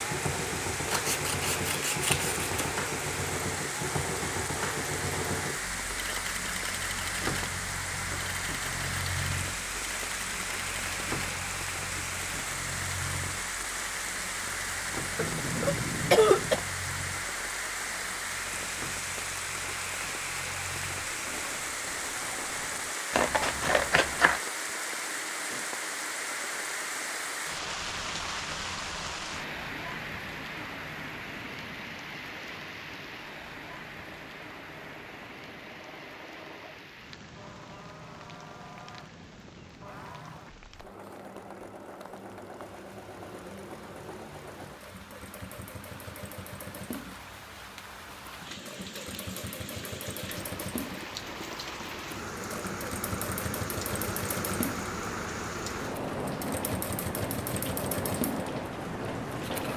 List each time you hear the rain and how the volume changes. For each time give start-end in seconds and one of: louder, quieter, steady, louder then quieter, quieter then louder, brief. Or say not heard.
0.0-59.7 quieter then louder.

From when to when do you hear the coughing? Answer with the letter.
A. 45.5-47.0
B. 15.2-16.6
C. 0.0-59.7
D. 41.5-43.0
B.